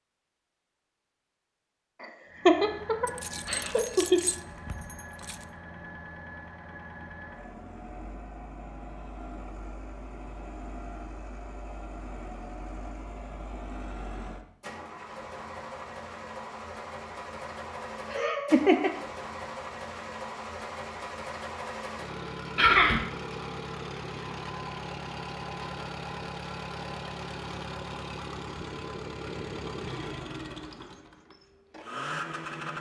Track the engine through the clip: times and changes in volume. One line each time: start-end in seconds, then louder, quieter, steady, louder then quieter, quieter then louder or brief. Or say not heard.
2.2-32.7 louder.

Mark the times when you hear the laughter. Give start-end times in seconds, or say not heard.
2.0-4.2, 18.1-18.9, 22.6-23.1.